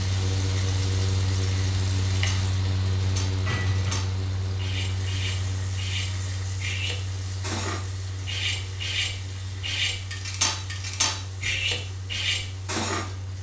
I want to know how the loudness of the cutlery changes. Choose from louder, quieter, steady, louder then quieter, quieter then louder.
louder.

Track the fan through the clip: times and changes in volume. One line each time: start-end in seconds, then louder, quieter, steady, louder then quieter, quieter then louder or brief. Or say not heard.
0.0-13.3 quieter.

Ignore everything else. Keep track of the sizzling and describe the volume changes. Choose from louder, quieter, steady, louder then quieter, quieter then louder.
quieter.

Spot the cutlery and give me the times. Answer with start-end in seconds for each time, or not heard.
2.1-13.1.